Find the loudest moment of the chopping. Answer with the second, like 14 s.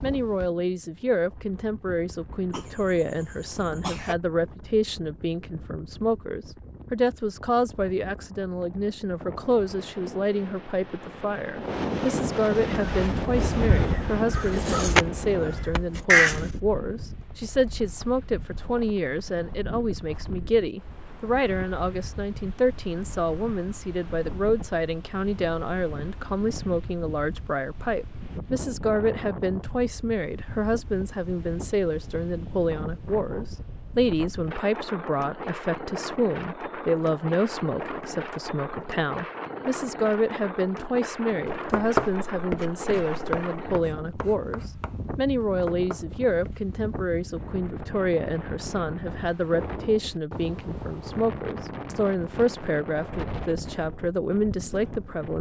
42 s.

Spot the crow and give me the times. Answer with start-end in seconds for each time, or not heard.
12.7-16.4.